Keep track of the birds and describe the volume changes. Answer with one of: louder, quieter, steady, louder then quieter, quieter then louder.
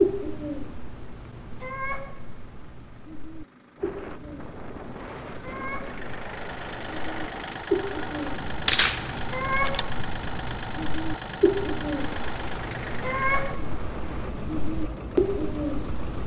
quieter then louder.